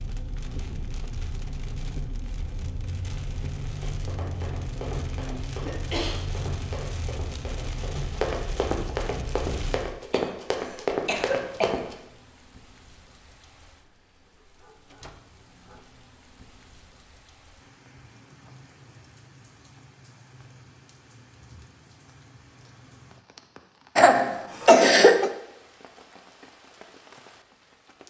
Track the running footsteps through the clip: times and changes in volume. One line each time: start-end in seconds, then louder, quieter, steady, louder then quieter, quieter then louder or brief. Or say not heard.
3.7-11.9 louder.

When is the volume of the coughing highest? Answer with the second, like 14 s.
25 s.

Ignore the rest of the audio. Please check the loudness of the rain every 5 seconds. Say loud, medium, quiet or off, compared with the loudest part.
loud, loud, quiet, quiet, quiet, quiet.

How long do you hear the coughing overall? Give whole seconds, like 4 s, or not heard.
4 s.